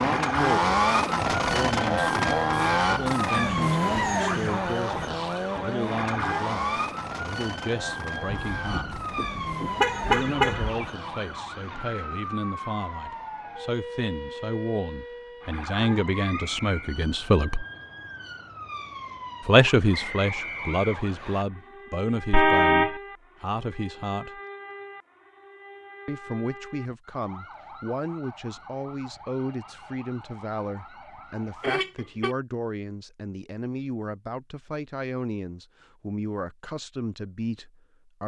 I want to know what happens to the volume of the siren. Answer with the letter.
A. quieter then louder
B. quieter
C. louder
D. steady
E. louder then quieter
B.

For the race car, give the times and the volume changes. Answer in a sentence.
You can hear the race car from 0.0 to 11.3 s, getting quieter.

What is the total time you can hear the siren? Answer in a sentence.
The siren can be heard for 32 seconds in total.